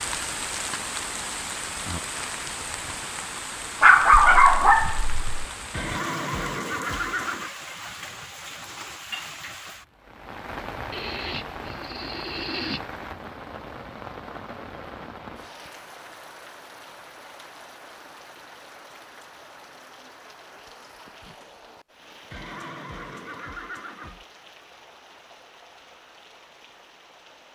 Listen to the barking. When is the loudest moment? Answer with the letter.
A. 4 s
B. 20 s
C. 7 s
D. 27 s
A.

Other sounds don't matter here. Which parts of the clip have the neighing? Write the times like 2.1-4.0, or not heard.
5.7-7.5, 10.9-12.8, 22.3-24.2.